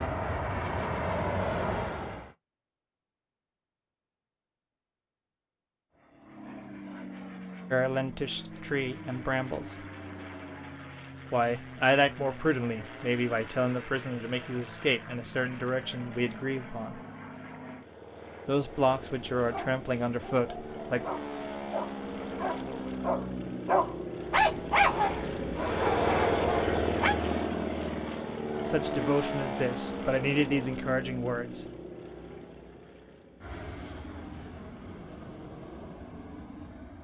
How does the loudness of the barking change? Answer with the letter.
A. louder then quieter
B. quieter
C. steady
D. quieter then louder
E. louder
A.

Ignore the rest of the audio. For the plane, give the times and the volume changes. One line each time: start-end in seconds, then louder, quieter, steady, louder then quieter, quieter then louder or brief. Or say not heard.
0.0-2.4 brief
6.0-36.9 louder then quieter.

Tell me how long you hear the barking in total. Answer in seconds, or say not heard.
8 s.